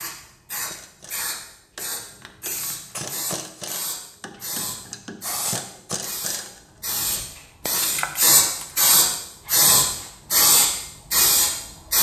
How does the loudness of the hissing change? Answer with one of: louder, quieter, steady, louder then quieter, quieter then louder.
louder.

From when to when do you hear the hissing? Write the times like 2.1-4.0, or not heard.
0.0-11.9.